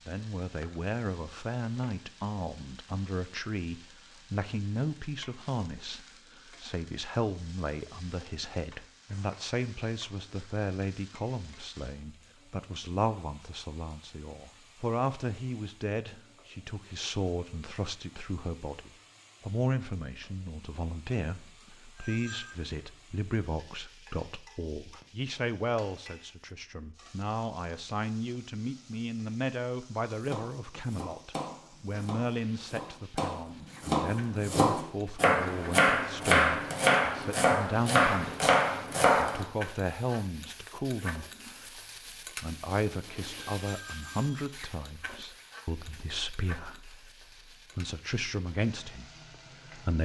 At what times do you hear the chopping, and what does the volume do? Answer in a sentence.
The chopping can be heard from 30.1 to 39.5 s, getting louder.